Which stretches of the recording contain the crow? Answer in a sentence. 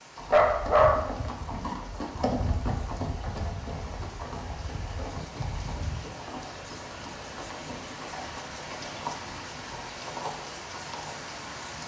You can't hear the crow here.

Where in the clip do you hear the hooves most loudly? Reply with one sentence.
The loudest moment of the hooves is at 2 seconds.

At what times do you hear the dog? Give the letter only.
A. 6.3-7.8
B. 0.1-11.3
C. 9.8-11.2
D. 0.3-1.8
D.